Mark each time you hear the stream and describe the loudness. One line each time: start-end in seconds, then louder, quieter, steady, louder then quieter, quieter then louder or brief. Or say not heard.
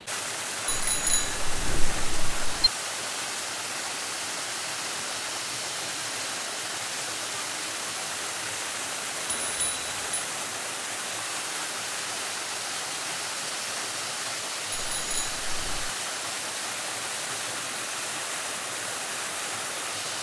0.0-20.1 steady.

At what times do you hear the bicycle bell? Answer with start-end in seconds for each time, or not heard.
0.7-2.7, 9.2-10.1, 14.7-15.9.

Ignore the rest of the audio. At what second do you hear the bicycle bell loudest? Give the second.
1 s.